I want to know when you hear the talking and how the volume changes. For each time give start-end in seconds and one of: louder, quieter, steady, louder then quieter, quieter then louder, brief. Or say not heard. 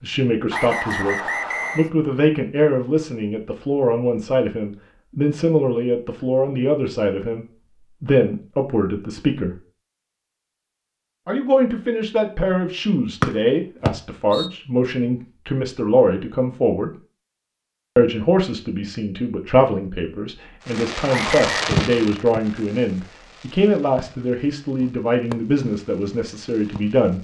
0.0-9.6 steady
11.2-16.9 steady
17.9-27.1 steady.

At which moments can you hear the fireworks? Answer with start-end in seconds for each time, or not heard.
20.6-27.1.